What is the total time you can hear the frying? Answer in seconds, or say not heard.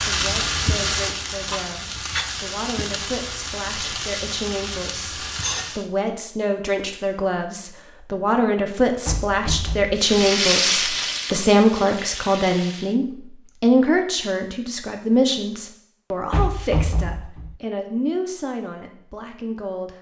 9 s.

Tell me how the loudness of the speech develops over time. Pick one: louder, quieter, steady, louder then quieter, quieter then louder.
louder then quieter.